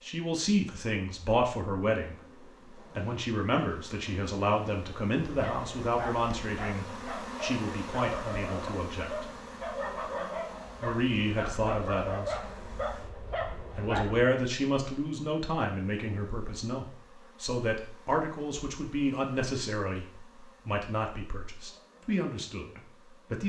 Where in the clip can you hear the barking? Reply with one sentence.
The barking can be heard from 5.3 to 14.2 s.